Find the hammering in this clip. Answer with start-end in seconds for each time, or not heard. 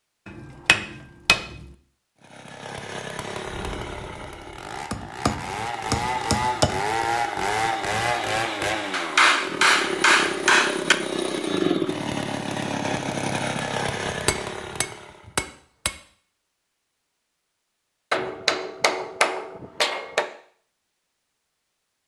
0.2-1.7, 4.9-6.8, 8.9-10.9, 14.1-15.9, 18.1-20.3.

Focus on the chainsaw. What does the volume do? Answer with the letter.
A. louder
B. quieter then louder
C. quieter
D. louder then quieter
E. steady
A.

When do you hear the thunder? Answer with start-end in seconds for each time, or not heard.
3.5-4.8.